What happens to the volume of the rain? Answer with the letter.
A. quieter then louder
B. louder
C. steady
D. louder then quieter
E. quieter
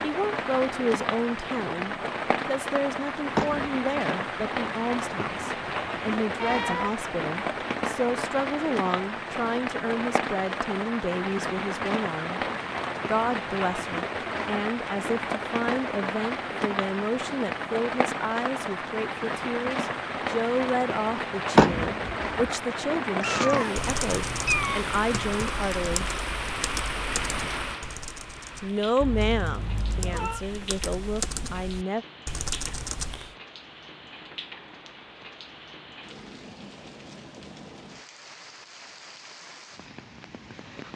E.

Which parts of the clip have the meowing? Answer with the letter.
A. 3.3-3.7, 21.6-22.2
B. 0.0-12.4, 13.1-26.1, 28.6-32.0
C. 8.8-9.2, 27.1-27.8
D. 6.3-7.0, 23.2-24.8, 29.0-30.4
D.